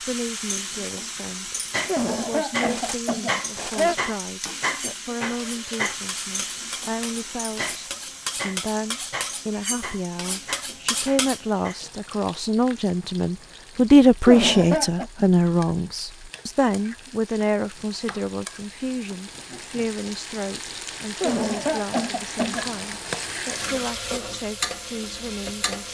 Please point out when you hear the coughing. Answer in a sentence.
You can hear the coughing from 1.9 to 4.0 s, from 14.2 to 15.1 s and from 21.2 to 22.7 s.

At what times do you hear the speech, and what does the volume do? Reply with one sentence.
The speech can be heard from 0.0 to 25.8 s, getting louder then quieter.